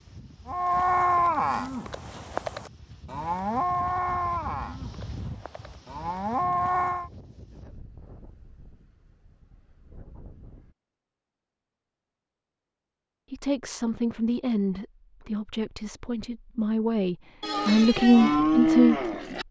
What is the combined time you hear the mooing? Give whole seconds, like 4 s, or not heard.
9 s.